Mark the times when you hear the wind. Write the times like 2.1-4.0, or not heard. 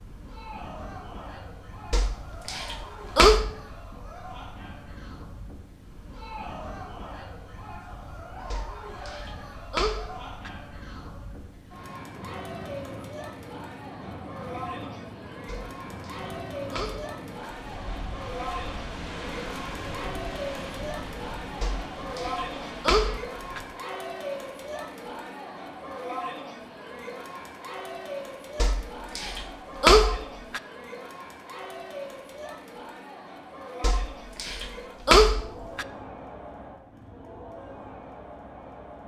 0.0-23.7.